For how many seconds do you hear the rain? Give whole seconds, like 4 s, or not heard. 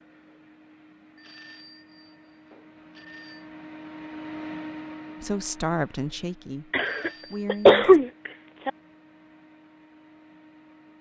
not heard.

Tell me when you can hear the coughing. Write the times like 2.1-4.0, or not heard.
6.7-8.7.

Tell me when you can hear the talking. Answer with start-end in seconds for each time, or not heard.
5.2-8.0.